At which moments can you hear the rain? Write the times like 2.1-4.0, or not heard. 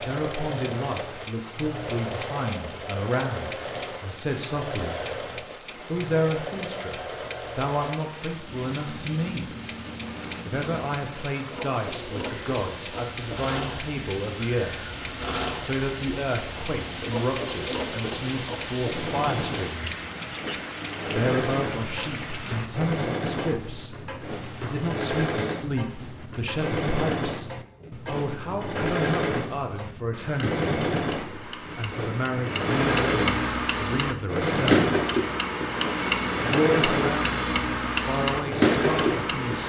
0.2-22.9.